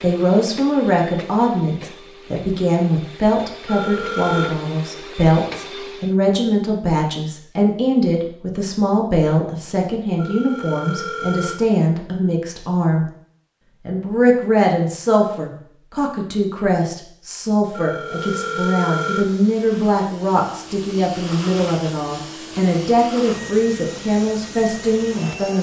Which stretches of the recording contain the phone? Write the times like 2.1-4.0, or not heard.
3.6-4.5, 10.2-11.6, 17.7-19.3.